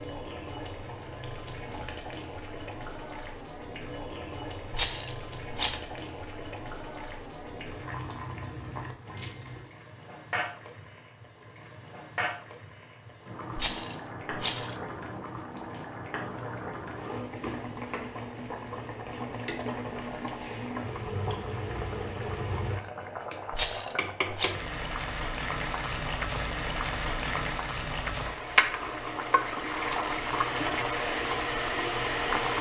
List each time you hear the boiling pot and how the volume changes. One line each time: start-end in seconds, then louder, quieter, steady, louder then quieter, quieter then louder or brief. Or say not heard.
0.0-32.5 louder.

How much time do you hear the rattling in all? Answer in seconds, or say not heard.
3 s.